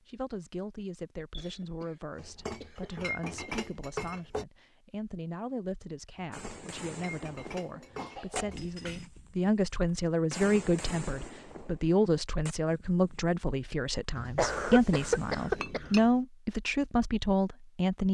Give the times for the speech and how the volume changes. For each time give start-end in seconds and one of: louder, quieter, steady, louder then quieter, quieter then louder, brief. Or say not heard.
0.1-18.1 louder.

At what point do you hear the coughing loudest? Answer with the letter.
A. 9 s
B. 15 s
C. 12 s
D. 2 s
B.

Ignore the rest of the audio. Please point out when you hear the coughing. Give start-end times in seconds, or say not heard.
1.3-3.7, 7.7-9.1, 14.3-15.9.